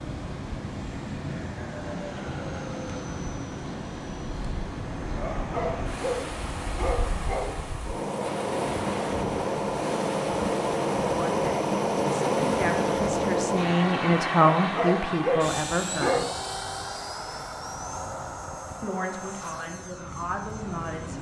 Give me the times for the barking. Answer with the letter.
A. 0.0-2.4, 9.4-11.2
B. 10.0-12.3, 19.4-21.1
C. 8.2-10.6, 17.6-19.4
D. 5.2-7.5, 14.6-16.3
D.